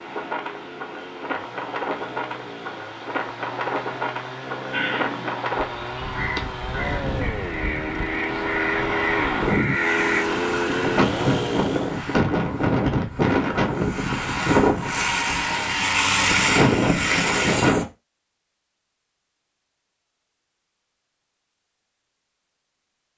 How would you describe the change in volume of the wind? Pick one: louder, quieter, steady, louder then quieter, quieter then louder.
louder.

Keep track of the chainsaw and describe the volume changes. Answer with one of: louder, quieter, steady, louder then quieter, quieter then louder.
louder.